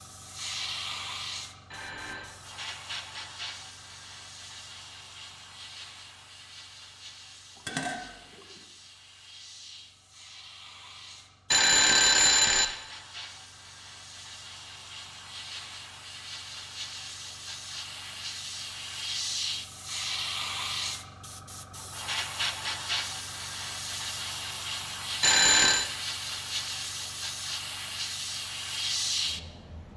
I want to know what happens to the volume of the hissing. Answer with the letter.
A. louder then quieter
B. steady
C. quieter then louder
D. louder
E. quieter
C.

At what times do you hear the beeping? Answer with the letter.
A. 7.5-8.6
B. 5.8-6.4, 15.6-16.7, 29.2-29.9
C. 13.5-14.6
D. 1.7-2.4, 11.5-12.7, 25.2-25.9
D.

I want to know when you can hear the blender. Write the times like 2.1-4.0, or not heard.
not heard.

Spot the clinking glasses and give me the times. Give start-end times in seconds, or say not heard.
7.5-8.6.